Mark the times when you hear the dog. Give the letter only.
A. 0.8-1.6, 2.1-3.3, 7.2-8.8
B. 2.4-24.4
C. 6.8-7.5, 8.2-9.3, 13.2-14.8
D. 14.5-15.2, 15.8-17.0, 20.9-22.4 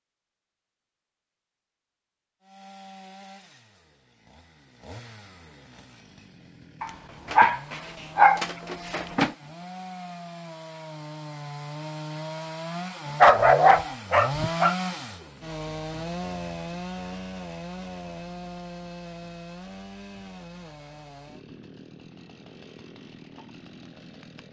C.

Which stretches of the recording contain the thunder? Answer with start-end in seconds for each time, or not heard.
not heard.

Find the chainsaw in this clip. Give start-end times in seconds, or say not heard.
2.4-24.4.